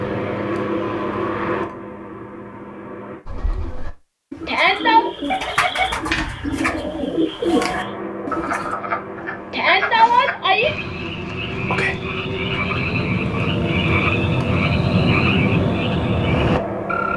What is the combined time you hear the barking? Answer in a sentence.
The barking can't be heard in this clip.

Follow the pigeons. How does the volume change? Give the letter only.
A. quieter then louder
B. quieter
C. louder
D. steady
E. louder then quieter
C.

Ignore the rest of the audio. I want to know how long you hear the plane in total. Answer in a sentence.
You can hear the plane for 13 seconds altogether.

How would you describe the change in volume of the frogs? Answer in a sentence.
The loudness of the frogs goes up.